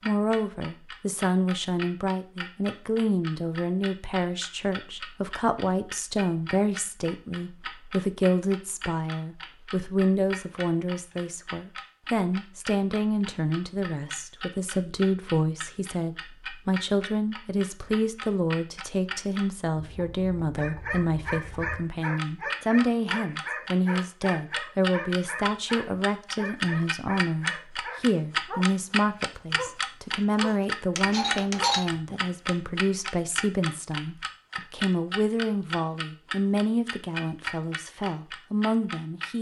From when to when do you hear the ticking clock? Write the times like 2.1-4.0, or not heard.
0.0-39.3.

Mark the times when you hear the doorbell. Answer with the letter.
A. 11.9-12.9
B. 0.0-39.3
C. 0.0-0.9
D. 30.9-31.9
D.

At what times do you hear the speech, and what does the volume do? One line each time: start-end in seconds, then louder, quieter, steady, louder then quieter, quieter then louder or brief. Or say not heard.
0.0-39.3 steady.